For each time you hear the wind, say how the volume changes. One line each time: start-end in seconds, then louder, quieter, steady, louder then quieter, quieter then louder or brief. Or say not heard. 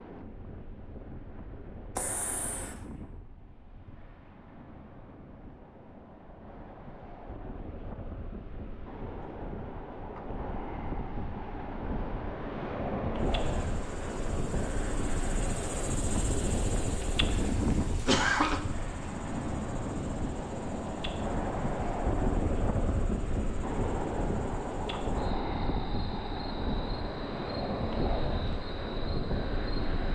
0.0-30.1 louder.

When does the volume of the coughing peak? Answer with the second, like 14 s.
18 s.